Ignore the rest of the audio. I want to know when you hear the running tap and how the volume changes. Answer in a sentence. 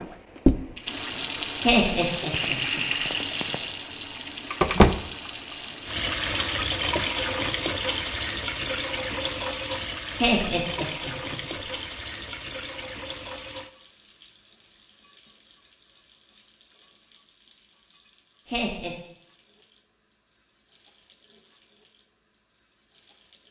The running tap can be heard from 0.0 to 23.4 s, getting quieter.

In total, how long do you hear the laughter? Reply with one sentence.
The laughter can be heard for 3 seconds in total.